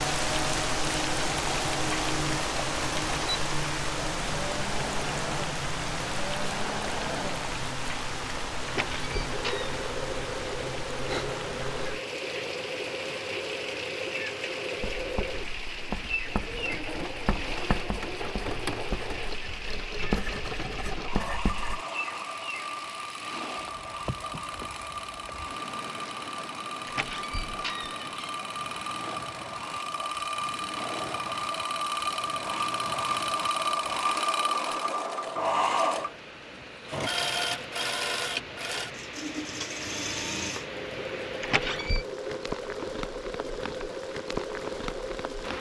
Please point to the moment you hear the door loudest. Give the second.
42 s.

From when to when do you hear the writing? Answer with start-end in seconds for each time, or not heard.
14.8-21.8.